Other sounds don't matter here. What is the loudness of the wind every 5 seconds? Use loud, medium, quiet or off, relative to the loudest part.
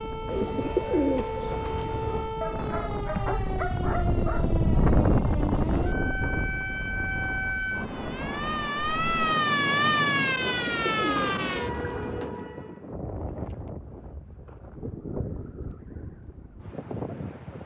loud, loud, medium, medium.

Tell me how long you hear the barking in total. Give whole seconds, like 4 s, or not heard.
2 s.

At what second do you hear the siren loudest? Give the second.
10 s.